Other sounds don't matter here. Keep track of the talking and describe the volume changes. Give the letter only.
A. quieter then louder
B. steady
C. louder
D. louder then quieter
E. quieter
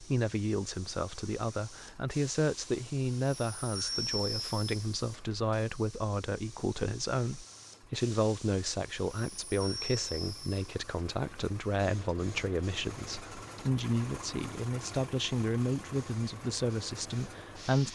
B.